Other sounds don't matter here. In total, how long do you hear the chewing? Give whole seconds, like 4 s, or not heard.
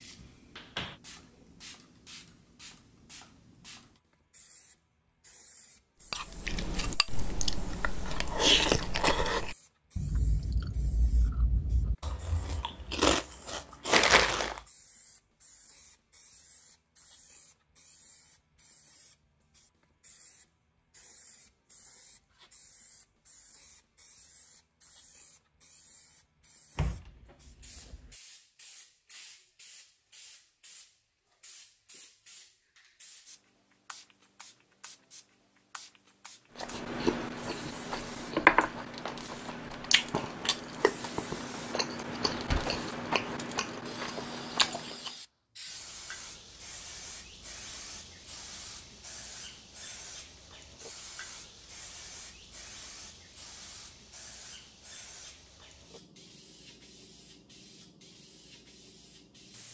17 s.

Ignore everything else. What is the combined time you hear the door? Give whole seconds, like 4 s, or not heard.
3 s.